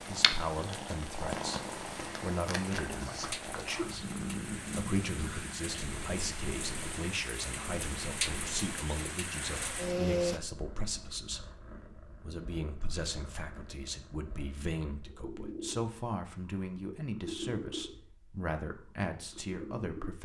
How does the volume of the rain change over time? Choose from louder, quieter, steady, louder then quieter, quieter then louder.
louder.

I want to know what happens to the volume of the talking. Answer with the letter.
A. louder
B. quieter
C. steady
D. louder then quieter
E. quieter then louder
C.